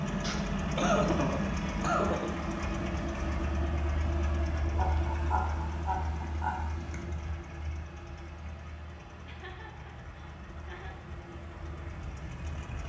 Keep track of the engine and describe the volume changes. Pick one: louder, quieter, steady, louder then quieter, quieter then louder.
quieter.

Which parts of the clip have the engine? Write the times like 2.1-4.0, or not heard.
0.0-12.8.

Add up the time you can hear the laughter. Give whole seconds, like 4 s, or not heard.
6 s.